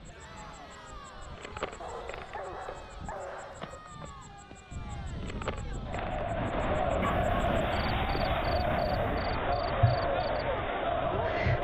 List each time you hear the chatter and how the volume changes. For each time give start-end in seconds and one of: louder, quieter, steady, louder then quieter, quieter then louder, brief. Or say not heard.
0.0-11.5 louder.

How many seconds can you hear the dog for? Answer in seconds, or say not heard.
4 s.